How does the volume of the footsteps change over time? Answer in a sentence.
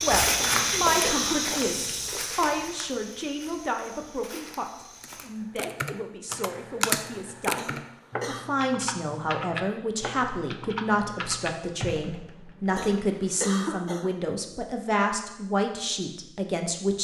The volume of the footsteps goes down.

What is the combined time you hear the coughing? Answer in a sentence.
You can hear the coughing for 4 seconds altogether.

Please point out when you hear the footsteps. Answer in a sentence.
The footsteps can be heard from 0.0 to 5.3 s.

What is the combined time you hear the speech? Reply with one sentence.
The speech can be heard for 17 seconds in total.